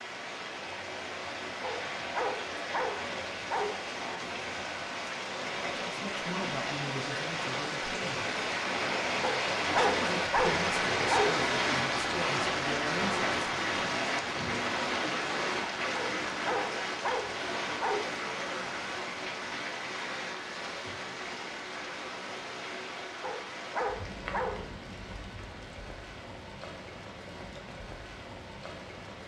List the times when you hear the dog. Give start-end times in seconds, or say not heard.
1.6-3.9, 9.2-11.4, 15.9-18.1, 23.2-25.1.